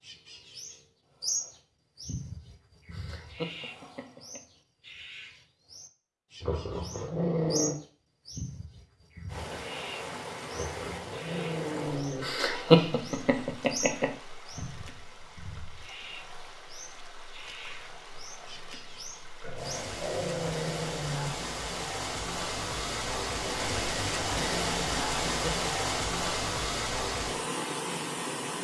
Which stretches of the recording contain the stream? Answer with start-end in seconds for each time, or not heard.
9.2-28.5.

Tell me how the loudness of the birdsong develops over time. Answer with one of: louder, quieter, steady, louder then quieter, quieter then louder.
quieter.